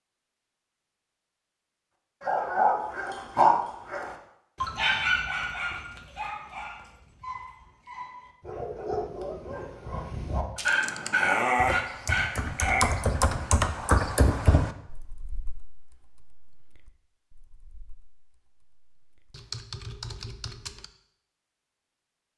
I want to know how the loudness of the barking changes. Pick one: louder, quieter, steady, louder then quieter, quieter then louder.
quieter then louder.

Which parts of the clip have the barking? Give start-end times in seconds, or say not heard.
2.2-13.0.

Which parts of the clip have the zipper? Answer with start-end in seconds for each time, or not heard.
not heard.